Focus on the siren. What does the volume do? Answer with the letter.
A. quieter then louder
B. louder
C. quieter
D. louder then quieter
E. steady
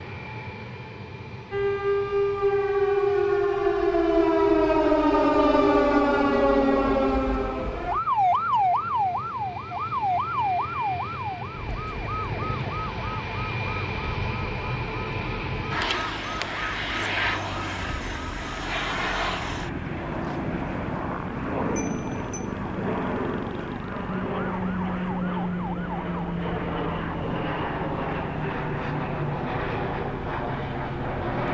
C.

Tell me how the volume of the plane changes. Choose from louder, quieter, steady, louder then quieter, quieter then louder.
louder.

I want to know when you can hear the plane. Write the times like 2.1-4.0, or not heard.
0.0-31.5.